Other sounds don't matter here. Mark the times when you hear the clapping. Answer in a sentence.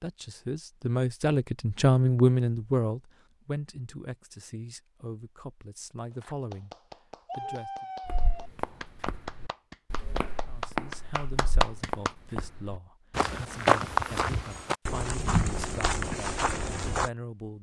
The clapping can be heard from 6.2 to 12.1 s.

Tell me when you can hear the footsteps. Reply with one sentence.
The footsteps can be heard from 8.1 to 17.1 s.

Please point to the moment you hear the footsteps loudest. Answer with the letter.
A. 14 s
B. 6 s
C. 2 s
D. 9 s
A.